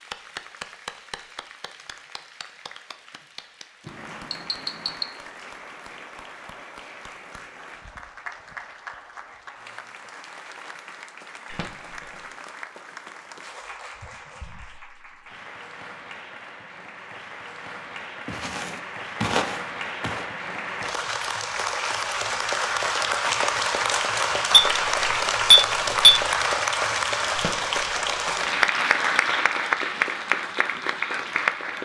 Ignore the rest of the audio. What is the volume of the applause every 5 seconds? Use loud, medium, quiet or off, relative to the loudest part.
quiet, quiet, quiet, quiet, loud, loud, loud.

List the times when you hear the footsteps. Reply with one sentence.
The footsteps can be heard from 18.2 to 20.2 s.